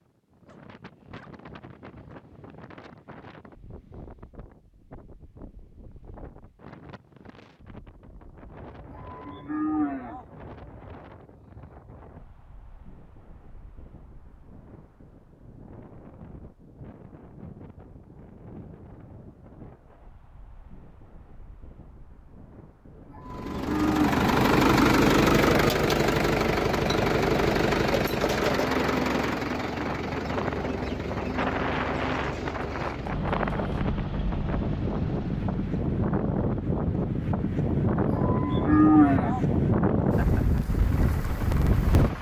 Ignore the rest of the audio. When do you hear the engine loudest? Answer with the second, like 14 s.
25 s.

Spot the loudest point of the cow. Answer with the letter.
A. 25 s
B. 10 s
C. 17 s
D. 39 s
D.